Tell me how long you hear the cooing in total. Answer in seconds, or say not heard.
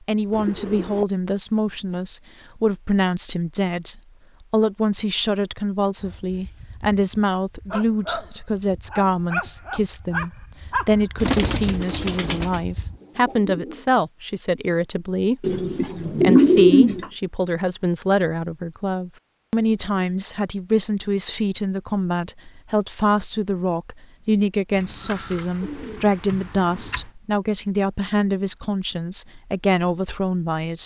7 s.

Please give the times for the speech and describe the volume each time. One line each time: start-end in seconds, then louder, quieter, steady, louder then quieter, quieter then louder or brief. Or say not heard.
0.1-30.8 steady.